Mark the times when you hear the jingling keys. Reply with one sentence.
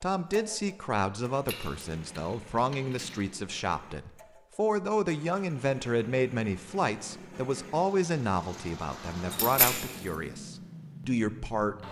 The jingling keys can be heard from 1.4 to 3.2 s and from 9.3 to 10.1 s.